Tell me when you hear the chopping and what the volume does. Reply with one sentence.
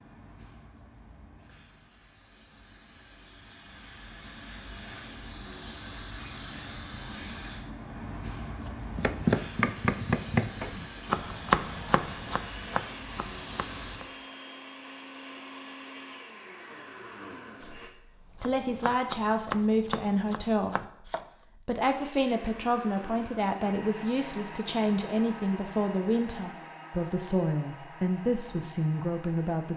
You can hear the chopping from 8.9 to 14.1 s, getting quieter; and briefly from 18.4 to 21.2 s.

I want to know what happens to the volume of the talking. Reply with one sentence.
The volume of the talking stays about the same.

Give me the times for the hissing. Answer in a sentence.
You can hear the hissing from 0.0 to 14.0 s.